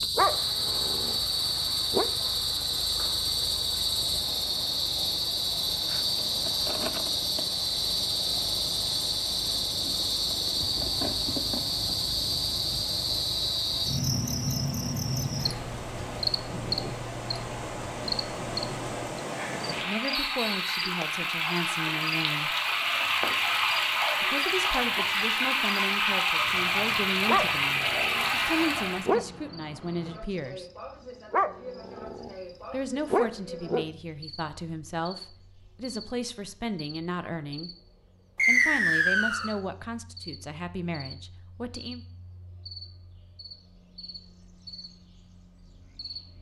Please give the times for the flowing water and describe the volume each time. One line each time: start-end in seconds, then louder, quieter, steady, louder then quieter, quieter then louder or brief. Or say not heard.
0.0-29.1 louder.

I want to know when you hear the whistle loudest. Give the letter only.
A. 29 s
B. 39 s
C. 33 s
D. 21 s
B.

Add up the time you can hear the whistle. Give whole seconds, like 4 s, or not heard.
2 s.